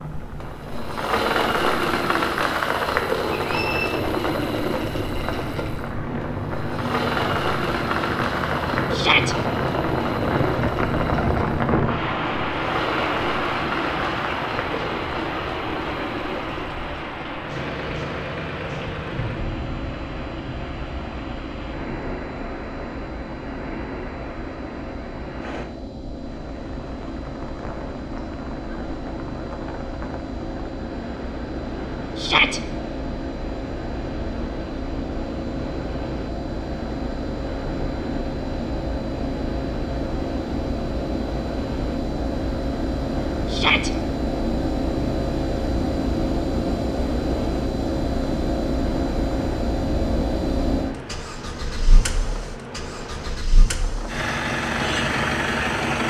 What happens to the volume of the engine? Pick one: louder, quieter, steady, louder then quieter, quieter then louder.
quieter then louder.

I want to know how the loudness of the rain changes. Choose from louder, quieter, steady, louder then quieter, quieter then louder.
quieter.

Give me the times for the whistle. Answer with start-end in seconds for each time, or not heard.
3.4-4.0.